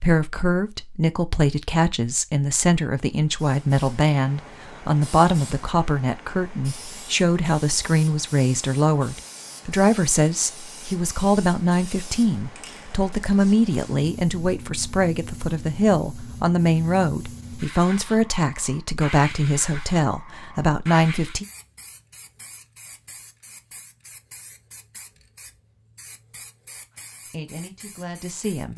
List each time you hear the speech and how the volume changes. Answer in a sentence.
The speech can be heard from 0.0 to 21.4 s, at a steady volume; and briefly from 27.3 to 28.7 s.